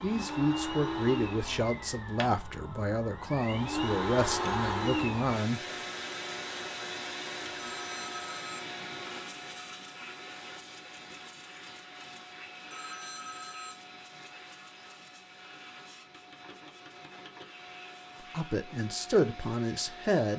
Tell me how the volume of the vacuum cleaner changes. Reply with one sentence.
The loudness of the vacuum cleaner goes down.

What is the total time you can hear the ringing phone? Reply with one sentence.
You can hear the ringing phone for 2 seconds altogether.